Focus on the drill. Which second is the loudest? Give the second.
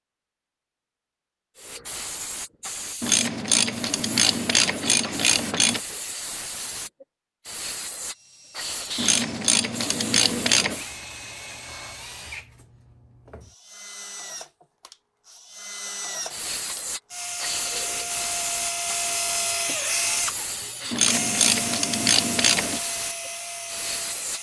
20 s.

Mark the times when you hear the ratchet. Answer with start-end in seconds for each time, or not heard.
3.0-5.8, 8.9-10.8, 20.9-22.8.